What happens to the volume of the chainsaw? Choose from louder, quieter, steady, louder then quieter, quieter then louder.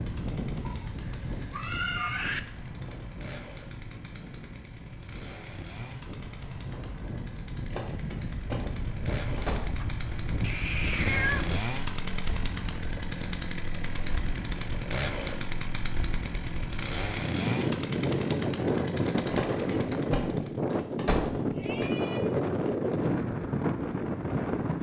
louder.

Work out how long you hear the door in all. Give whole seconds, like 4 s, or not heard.
5 s.